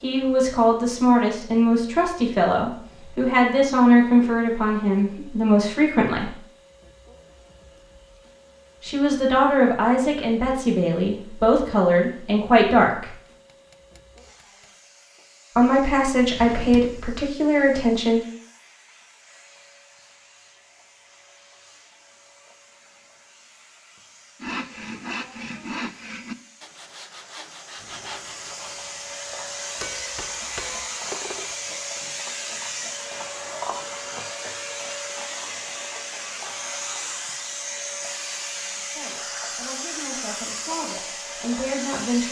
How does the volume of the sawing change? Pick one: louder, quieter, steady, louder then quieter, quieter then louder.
quieter.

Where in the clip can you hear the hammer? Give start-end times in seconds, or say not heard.
13.2-14.7, 29.8-31.6.